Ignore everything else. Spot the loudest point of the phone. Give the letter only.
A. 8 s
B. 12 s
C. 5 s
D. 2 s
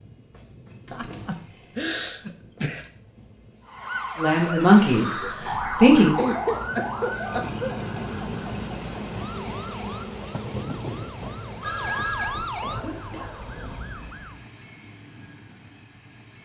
B.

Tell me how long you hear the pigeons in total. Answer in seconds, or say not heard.
not heard.